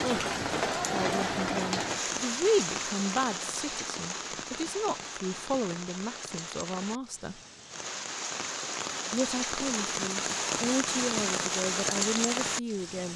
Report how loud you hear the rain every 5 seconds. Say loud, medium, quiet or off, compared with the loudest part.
loud, medium, loud.